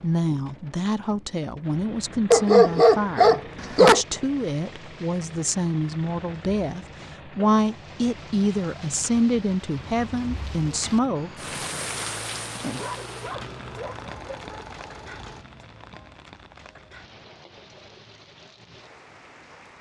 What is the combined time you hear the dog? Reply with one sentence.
You can hear the dog for 4 seconds altogether.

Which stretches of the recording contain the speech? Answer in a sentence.
The speech can be heard from 0.0 to 11.5 s.